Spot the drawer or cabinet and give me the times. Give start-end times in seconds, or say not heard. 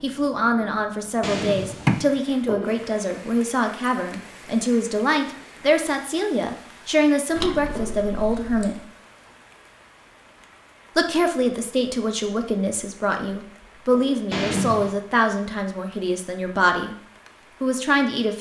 1.2-2.1, 7.3-8.6, 14.3-14.9.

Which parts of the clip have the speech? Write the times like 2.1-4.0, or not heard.
0.0-8.8, 10.9-16.9, 17.6-18.3.